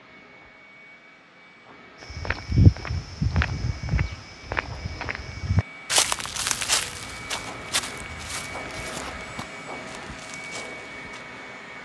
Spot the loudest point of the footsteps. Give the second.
3 s.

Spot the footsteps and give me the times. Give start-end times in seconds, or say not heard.
2.0-11.2.